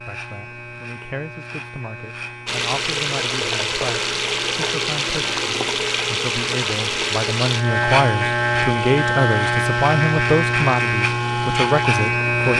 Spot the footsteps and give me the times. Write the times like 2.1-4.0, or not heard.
not heard.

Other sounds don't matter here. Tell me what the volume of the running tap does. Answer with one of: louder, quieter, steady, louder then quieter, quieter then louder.
quieter.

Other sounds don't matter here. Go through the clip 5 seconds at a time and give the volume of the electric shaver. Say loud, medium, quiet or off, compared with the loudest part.
quiet, loud, loud.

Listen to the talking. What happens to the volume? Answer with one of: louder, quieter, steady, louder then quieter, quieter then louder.
louder.